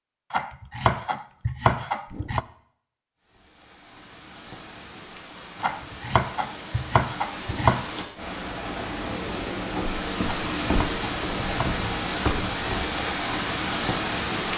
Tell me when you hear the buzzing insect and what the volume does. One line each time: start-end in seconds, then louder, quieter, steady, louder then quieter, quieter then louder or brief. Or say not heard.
not heard.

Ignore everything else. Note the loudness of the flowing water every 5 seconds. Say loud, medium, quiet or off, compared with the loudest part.
quiet, medium, loud.